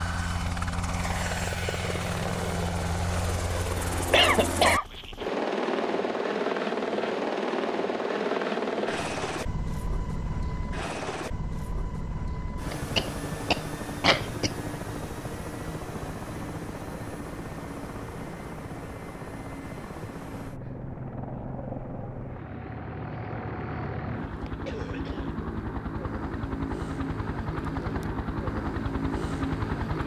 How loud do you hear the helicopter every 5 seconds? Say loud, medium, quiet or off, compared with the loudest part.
loud, loud, medium, medium, medium, loud.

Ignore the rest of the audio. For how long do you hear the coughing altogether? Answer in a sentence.
The coughing can be heard for 4 seconds in total.